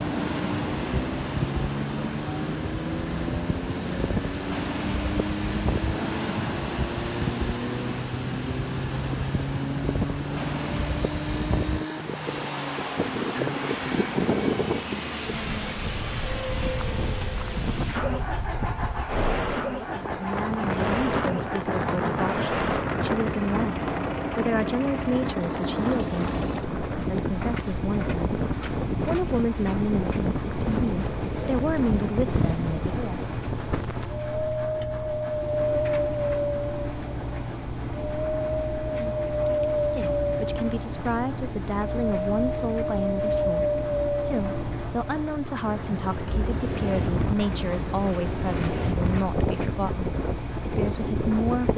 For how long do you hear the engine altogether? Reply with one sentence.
You can hear the engine for 52 seconds altogether.